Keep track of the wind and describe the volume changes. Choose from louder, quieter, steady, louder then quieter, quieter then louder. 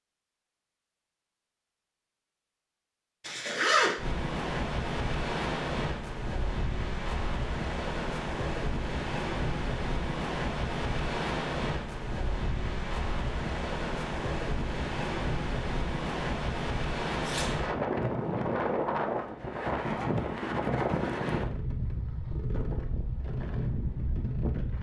steady.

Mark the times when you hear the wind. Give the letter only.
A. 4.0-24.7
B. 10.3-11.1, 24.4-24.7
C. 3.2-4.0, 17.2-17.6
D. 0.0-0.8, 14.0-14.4
A.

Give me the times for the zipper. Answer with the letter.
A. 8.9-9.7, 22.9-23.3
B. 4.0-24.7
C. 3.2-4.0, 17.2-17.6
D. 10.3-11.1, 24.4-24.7
C.